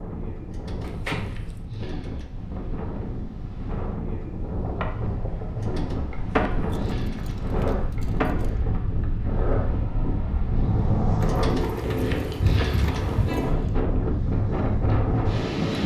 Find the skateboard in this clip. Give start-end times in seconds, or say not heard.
4.6-13.3.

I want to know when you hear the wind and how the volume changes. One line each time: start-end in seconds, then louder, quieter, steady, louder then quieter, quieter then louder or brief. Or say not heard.
0.0-15.8 louder.